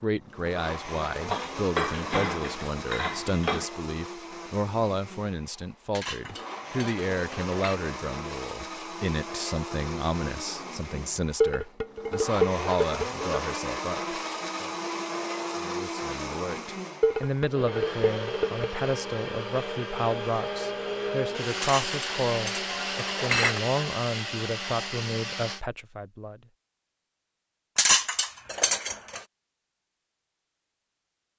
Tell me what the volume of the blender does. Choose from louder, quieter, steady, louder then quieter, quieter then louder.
louder.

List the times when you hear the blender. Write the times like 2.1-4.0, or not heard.
0.0-25.6.